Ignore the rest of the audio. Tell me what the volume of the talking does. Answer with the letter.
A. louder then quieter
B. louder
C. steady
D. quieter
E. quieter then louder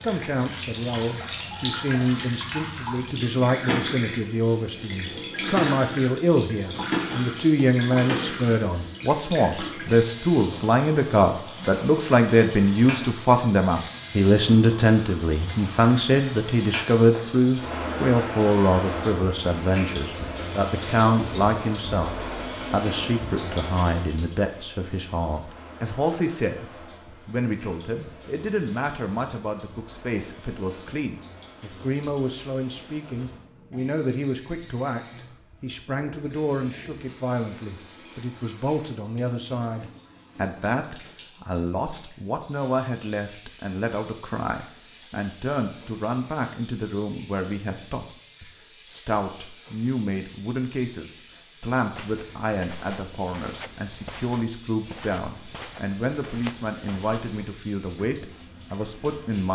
D.